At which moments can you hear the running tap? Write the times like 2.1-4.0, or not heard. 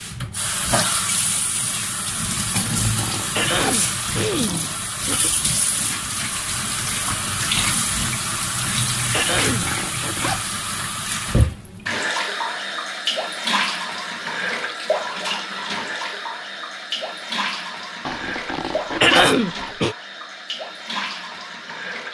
0.0-22.1.